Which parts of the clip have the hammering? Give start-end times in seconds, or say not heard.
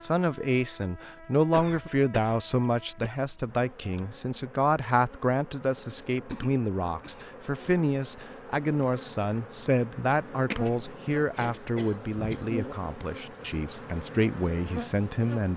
10.5-10.9.